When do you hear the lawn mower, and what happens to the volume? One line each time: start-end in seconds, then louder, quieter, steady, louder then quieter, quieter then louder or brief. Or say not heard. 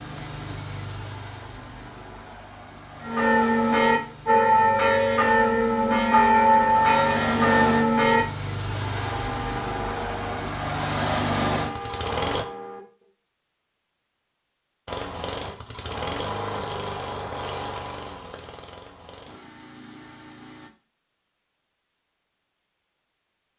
0.0-12.4 louder
14.8-20.7 quieter.